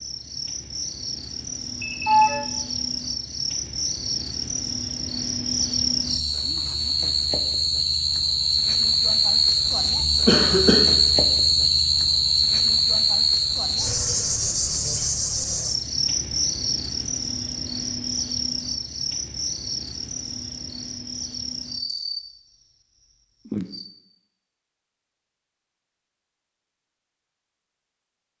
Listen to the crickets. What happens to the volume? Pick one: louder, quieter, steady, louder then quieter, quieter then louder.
louder then quieter.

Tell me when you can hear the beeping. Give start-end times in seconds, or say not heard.
1.8-2.5.